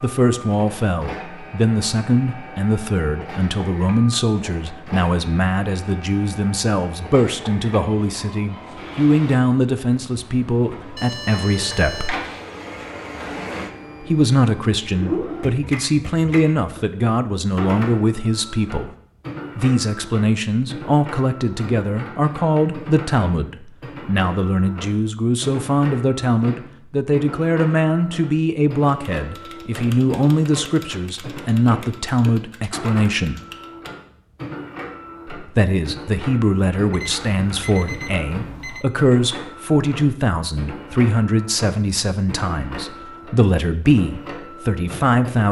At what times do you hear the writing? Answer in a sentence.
You can't hear the writing here.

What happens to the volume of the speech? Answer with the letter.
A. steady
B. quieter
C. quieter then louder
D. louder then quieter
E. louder
A.